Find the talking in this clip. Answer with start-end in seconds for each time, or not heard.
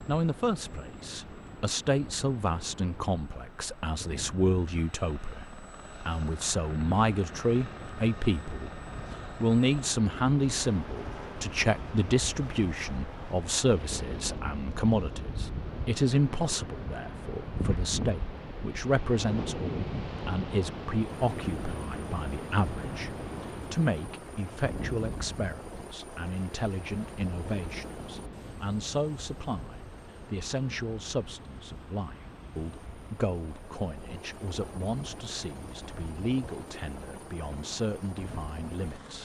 0.1-39.2.